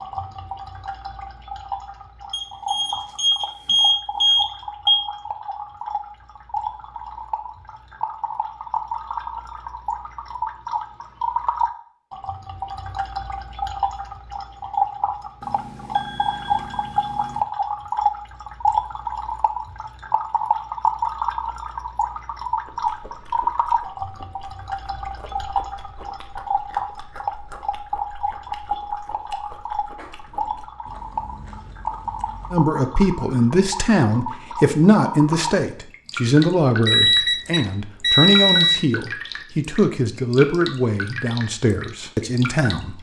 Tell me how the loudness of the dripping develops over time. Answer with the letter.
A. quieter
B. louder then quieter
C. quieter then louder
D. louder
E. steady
B.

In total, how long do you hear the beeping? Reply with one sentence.
The beeping can be heard for 7 seconds in total.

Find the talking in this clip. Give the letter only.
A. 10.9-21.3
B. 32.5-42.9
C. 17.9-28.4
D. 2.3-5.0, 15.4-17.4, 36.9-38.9
B.